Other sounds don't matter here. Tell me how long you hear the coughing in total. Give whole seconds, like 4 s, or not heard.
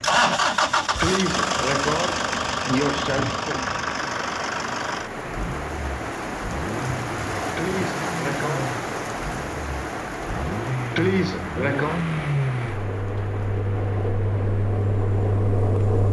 5 s.